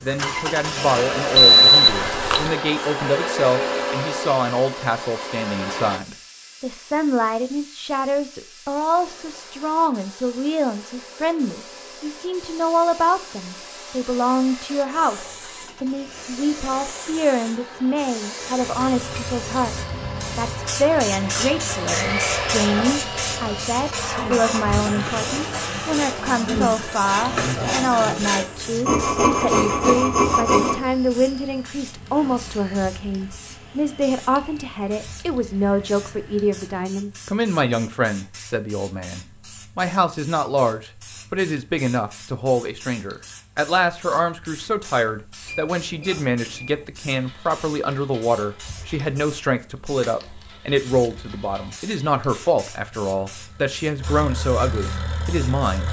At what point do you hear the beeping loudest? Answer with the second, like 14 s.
2 s.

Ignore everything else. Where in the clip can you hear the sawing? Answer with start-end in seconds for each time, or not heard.
21.4-30.8.